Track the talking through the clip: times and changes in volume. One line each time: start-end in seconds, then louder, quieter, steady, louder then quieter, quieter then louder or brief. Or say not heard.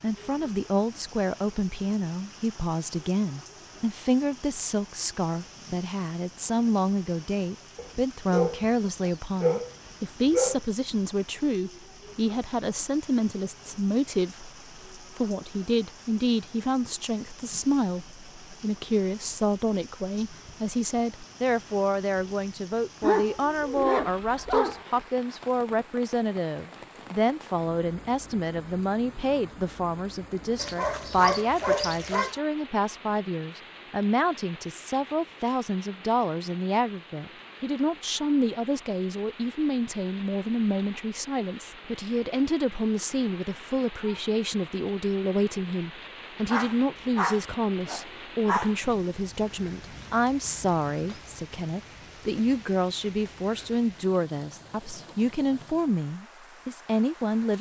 0.0-57.5 steady.